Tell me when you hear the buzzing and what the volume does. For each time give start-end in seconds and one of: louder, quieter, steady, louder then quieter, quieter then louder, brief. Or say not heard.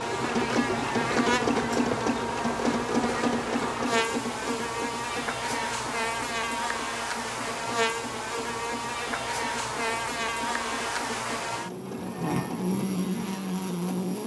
0.0-14.2 steady.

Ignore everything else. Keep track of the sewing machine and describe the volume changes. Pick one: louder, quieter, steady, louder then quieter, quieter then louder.
quieter.